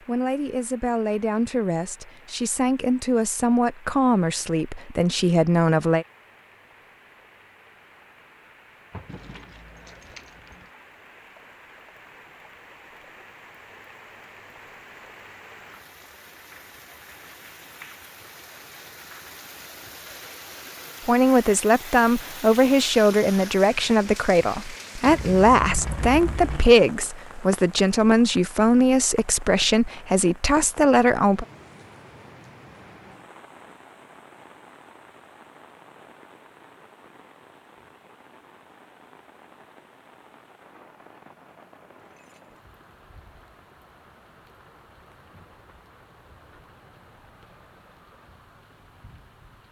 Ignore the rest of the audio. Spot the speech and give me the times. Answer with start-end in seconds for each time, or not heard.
0.0-6.0, 21.1-31.4.